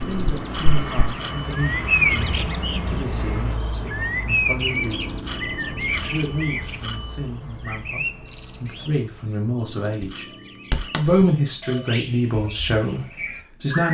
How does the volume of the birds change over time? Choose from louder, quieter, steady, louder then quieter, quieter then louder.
quieter.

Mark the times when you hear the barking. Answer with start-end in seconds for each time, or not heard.
not heard.